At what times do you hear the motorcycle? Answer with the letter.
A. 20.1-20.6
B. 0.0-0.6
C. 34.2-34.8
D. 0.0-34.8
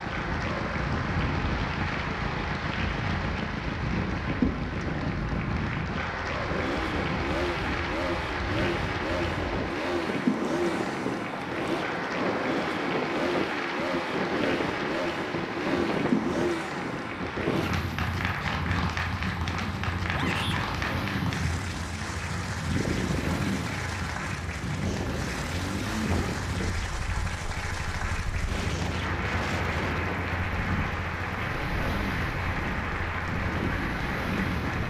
D.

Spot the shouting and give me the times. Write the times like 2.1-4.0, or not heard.
20.1-20.6.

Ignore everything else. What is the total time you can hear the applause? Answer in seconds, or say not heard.
35 s.